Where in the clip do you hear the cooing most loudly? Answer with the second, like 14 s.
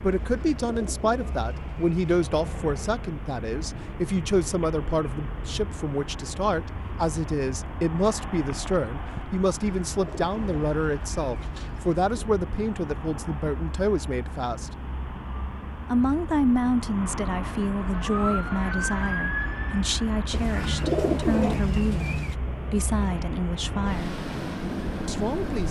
21 s.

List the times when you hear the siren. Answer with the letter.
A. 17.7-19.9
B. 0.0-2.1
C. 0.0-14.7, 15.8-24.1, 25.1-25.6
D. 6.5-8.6
A.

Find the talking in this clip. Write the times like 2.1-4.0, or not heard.
0.0-14.7, 15.8-24.1, 25.1-25.6.